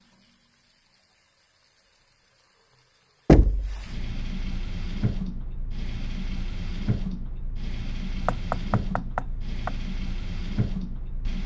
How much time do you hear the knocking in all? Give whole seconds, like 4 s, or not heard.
2 s.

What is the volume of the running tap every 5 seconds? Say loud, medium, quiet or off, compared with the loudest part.
medium, loud, loud.